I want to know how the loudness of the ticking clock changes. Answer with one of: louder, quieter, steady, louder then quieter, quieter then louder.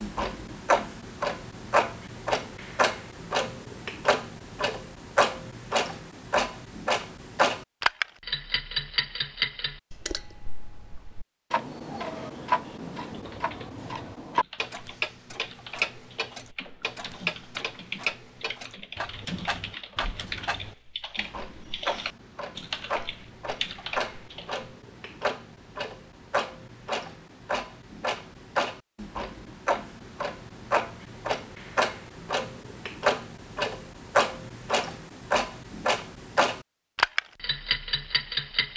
quieter then louder.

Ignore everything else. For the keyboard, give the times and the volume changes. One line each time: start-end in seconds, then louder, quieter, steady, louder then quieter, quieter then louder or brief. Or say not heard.
13.1-24.6 louder.